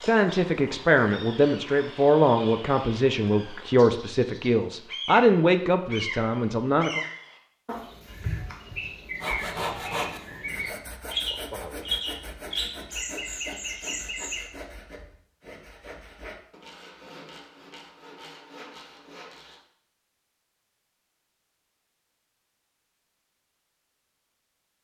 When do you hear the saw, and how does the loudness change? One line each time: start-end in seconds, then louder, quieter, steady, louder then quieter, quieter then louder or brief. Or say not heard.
9.2-19.6 quieter.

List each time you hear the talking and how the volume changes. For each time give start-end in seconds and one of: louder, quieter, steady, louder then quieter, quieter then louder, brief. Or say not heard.
0.0-7.0 steady.